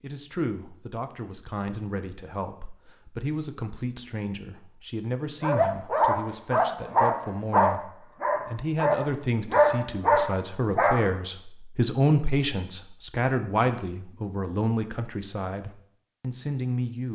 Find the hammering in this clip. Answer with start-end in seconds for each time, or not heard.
not heard.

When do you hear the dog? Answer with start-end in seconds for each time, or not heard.
5.4-11.1.